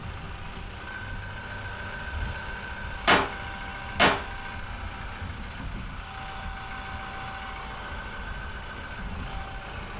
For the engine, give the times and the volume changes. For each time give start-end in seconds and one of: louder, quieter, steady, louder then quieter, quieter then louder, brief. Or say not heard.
0.0-9.9 steady.